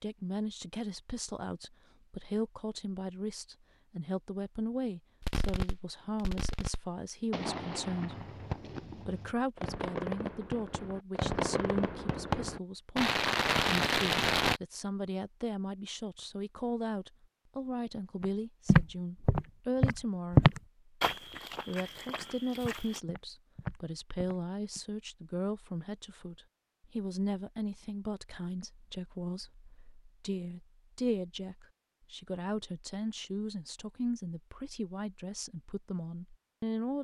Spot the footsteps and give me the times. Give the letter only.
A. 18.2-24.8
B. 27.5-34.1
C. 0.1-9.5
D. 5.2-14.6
A.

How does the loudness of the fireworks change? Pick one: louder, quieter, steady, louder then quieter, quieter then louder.
louder.